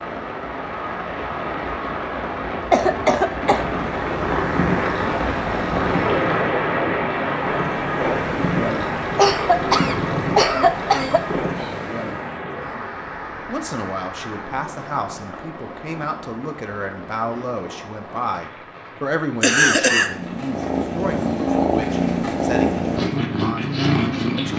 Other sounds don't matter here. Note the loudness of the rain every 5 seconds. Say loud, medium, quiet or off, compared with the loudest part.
loud, loud, medium, quiet, quiet.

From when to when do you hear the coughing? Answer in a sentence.
The coughing can be heard from 2.7 to 3.6 s, from 9.2 to 11.2 s and from 19.4 to 20.1 s.